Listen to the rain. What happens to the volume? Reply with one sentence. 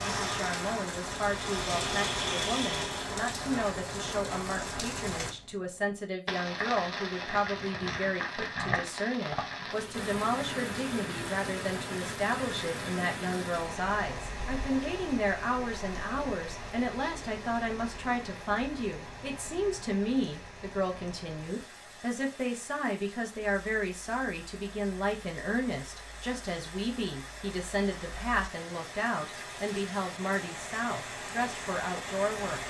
The loudness of the rain goes down, then up.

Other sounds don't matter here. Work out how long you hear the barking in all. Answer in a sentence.
You can't hear the barking here.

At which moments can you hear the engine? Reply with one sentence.
You can hear the engine from 0.0 to 3.2 s.